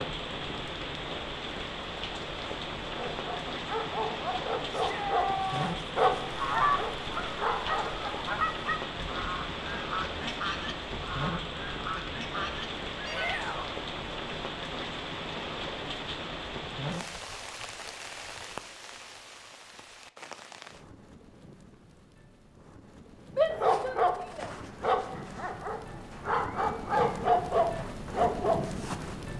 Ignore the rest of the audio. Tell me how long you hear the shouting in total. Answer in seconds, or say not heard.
3 s.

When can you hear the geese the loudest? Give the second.
7 s.